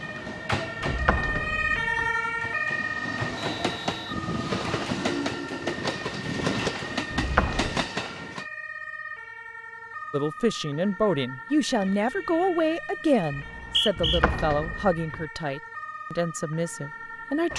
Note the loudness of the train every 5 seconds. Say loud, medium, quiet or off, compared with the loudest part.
loud, loud, off, off.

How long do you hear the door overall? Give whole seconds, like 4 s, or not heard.
3 s.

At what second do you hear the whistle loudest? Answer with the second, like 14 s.
14 s.